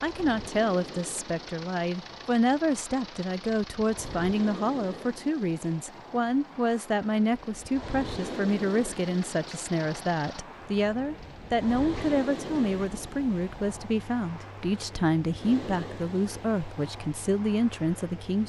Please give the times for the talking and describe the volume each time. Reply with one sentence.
The talking can be heard from 0.0 to 18.4 s, at a steady volume.